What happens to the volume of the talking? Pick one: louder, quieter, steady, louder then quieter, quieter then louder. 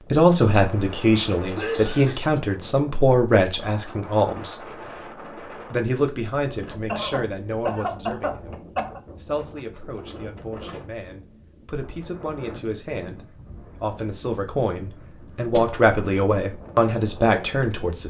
quieter then louder.